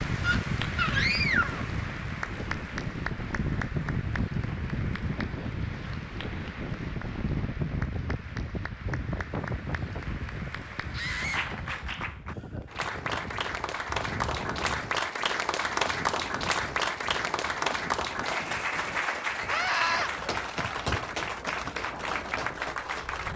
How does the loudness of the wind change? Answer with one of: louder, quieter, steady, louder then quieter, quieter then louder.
quieter.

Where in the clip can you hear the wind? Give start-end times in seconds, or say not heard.
0.0-23.3.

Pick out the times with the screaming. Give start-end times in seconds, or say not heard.
0.2-1.6, 10.9-11.6, 19.4-20.1.